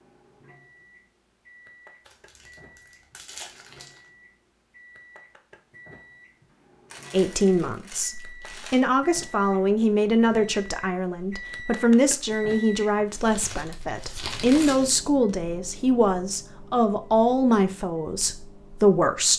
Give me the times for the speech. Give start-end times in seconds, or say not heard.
7.1-19.3.